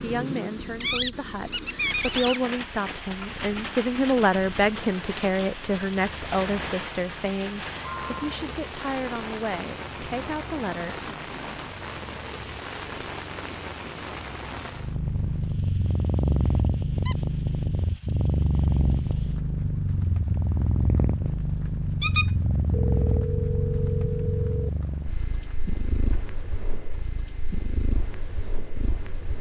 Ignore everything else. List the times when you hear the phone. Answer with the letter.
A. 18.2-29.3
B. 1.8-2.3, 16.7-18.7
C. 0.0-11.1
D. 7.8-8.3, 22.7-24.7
D.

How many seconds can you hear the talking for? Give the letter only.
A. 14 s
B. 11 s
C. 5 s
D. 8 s
B.